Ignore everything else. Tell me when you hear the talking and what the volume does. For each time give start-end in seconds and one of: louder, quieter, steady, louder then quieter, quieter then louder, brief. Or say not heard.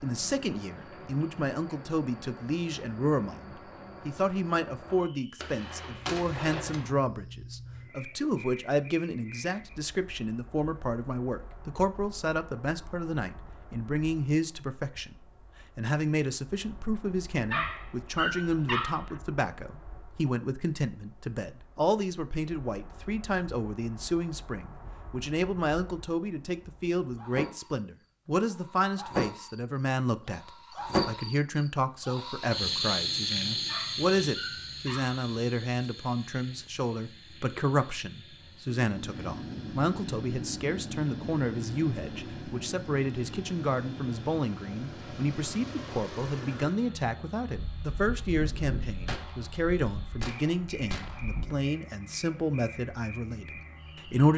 0.0-54.3 steady.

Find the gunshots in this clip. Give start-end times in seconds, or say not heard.
5.3-6.9, 47.8-51.5.